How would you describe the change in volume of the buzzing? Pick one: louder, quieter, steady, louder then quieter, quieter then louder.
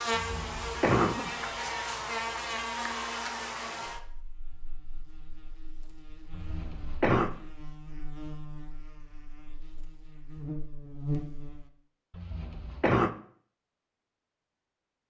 quieter then louder.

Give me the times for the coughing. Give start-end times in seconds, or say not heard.
0.1-1.4, 6.3-7.3, 12.1-13.1.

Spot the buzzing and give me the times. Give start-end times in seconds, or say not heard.
0.0-11.7.